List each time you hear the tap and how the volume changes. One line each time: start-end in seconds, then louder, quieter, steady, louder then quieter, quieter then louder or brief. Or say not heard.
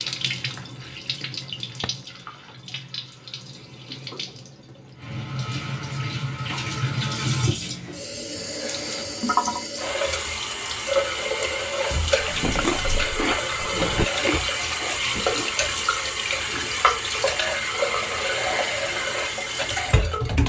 0.0-20.4 louder.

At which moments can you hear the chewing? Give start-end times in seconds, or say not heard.
12.6-15.6.